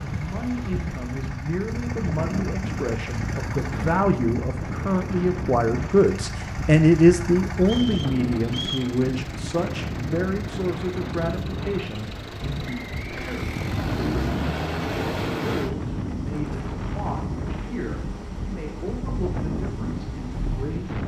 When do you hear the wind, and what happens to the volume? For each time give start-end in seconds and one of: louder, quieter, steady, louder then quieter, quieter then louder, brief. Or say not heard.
0.0-21.0 steady.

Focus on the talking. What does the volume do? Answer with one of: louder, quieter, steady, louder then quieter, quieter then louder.
louder then quieter.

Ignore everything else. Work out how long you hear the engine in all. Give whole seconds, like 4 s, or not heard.
21 s.